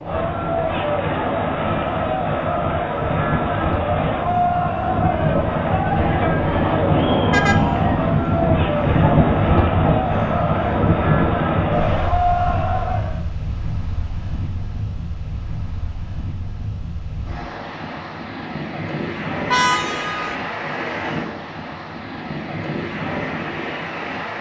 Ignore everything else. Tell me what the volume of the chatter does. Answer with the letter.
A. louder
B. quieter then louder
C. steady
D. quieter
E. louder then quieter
C.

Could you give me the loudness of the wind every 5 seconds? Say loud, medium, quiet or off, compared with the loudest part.
medium, loud, medium, medium, medium.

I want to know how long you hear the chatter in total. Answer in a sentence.
The chatter can be heard for 13 seconds in total.